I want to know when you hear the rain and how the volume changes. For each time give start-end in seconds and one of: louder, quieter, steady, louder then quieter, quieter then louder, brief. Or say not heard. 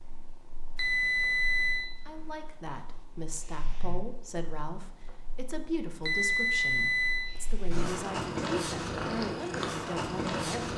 not heard.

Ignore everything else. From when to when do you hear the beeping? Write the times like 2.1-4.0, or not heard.
0.8-1.9, 6.0-7.3.